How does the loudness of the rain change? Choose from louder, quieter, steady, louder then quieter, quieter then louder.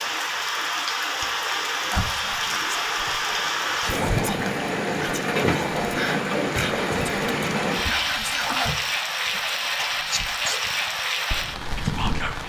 steady.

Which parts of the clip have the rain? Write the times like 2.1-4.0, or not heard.
0.0-12.4.